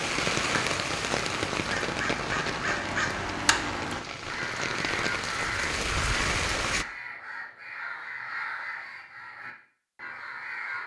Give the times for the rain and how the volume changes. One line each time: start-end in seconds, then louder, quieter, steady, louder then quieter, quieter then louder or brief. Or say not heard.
0.0-6.8 quieter then louder.